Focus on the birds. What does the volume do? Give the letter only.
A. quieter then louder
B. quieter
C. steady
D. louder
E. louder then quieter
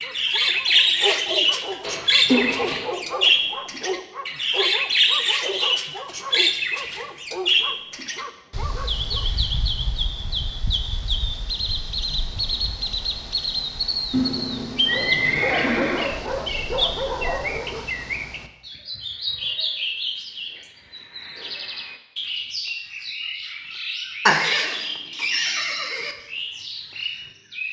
B.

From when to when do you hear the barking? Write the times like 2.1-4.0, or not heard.
0.0-9.2, 14.9-17.9.